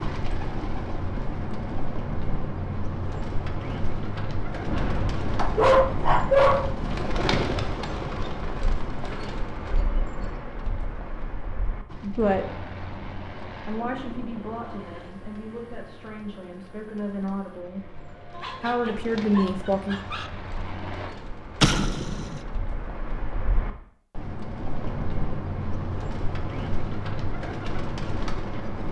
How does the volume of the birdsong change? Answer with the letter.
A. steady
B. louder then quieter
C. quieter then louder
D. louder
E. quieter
C.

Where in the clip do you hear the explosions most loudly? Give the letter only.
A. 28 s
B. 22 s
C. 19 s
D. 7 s
B.